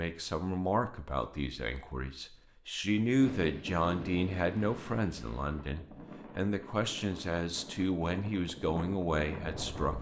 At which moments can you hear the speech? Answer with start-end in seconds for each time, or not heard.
0.0-9.9.